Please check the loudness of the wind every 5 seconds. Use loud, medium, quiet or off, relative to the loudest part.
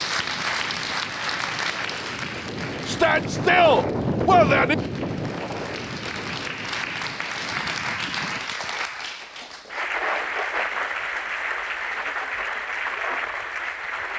loud, medium, off.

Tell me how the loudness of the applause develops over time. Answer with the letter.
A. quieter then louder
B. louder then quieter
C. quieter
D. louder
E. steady
A.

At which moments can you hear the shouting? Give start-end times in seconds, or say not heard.
2.9-4.8.